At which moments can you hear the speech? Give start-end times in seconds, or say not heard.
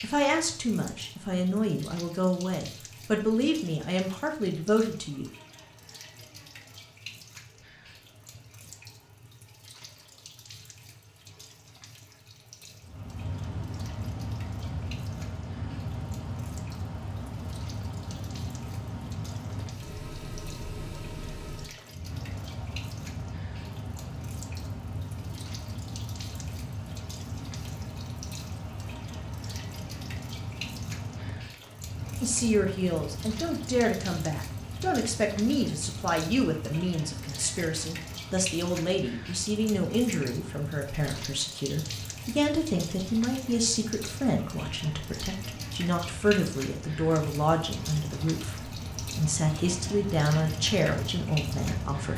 0.0-5.3, 32.2-52.1.